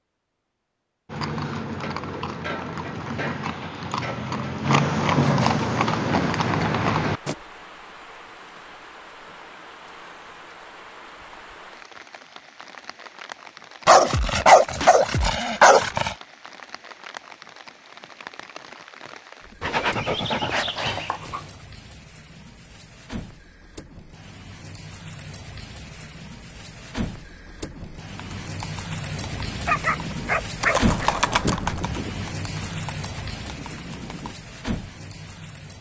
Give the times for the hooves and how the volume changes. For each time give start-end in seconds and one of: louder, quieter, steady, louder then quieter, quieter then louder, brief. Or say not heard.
1.1-7.3 louder
28.1-34.4 louder then quieter.